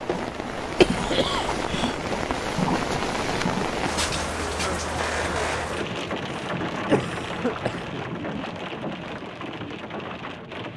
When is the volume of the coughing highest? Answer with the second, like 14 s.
1 s.